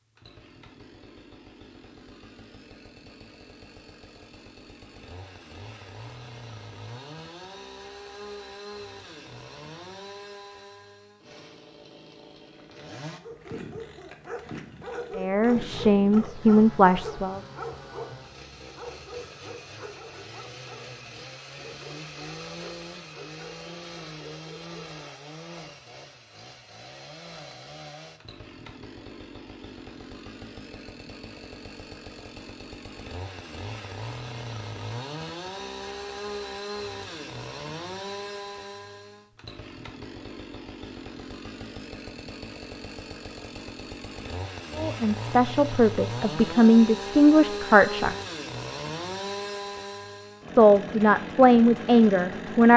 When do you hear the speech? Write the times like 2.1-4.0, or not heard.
15.2-17.4, 44.8-48.1, 50.5-52.7.